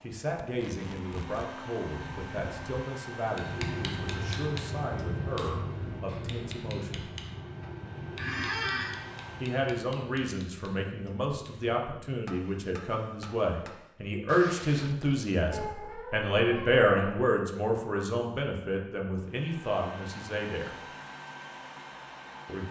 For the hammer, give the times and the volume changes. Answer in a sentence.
The hammer can be heard from 3.2 to 13.9 s, getting quieter.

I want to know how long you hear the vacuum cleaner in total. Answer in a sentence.
The vacuum cleaner can be heard for 13 seconds in total.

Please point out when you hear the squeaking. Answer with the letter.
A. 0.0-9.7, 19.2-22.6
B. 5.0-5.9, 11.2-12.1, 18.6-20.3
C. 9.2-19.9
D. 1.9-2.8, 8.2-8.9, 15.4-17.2
D.